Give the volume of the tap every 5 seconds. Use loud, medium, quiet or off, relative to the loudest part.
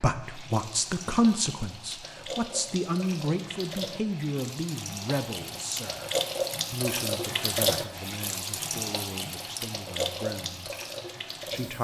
medium, loud, loud.